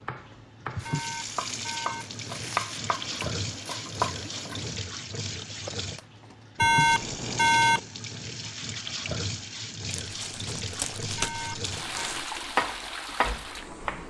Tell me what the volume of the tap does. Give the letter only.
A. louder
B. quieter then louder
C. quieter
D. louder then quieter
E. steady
E.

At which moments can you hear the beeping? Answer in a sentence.
You can hear the beeping from 0.8 to 2.0 s, from 6.5 to 7.8 s and from 11.2 to 12.2 s.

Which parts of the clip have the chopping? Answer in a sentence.
The chopping can be heard from 0.0 to 4.8 s and from 12.6 to 14.0 s.